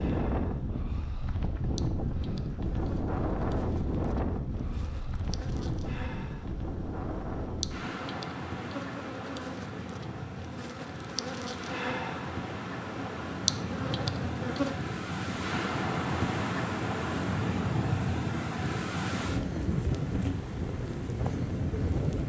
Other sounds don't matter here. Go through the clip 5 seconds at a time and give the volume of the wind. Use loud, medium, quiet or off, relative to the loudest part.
loud, medium, medium, loud, loud.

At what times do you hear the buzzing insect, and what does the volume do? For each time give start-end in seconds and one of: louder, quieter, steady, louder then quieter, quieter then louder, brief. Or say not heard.
0.0-14.8 louder.